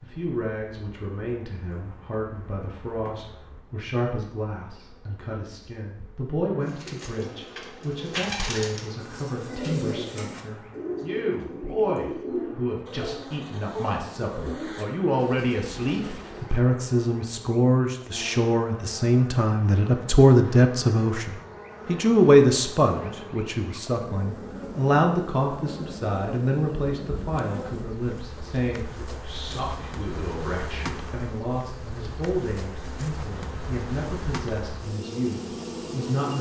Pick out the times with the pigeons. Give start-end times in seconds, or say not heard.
6.7-16.6.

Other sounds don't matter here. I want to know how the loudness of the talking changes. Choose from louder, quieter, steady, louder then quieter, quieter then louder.
louder then quieter.